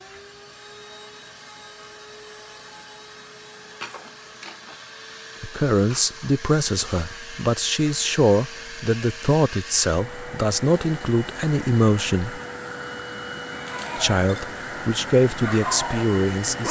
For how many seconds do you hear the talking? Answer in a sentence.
The talking can be heard for 10 seconds in total.